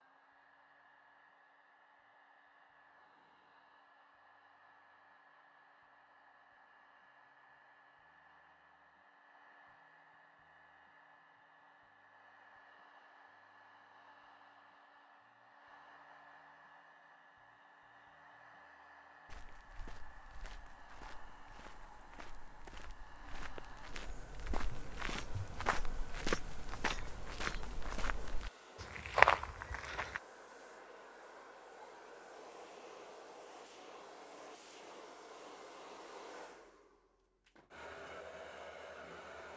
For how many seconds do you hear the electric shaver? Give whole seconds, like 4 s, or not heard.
not heard.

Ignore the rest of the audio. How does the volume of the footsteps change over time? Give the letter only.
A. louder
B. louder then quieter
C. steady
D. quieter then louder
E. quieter
A.